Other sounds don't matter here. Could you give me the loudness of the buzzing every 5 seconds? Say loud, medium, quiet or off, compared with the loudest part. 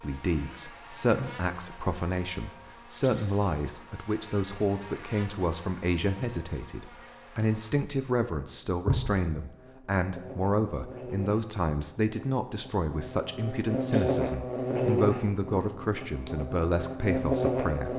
quiet, quiet, loud, loud.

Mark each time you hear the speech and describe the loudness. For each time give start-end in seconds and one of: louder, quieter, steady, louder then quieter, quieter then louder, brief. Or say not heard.
0.0-17.9 steady.